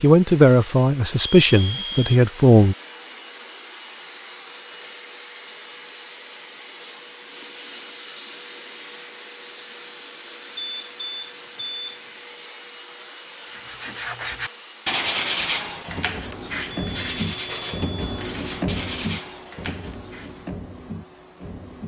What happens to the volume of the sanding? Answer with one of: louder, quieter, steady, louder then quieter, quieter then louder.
quieter.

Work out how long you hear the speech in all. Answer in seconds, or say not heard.
3 s.